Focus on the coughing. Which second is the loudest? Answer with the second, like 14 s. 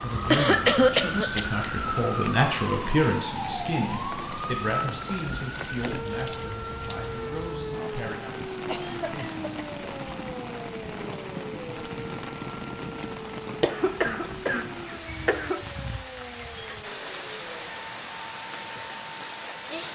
1 s.